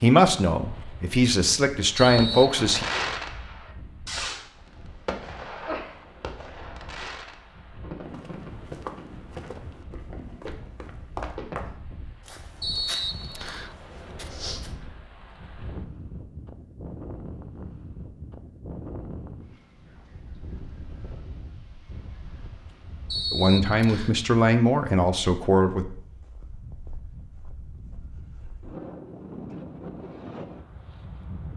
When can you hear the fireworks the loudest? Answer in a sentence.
The loudest moment of the fireworks is at 3 seconds.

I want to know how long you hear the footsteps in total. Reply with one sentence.
The footsteps can be heard for 7 seconds in total.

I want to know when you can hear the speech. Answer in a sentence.
The speech can be heard from 0.0 to 2.9 s and from 23.3 to 25.9 s.